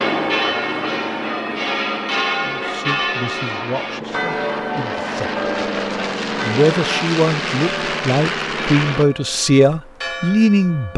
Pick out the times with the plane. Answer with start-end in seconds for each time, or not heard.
0.0-9.1.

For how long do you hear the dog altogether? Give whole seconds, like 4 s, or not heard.
not heard.